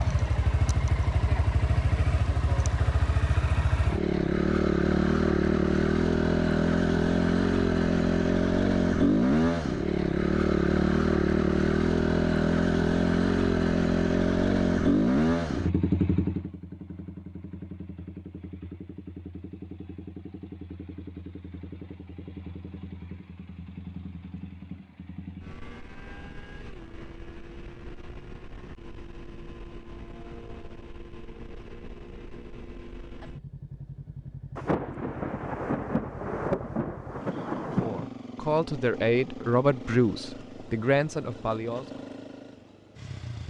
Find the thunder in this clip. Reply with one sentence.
The thunder can be heard from 34.5 to 38.1 s.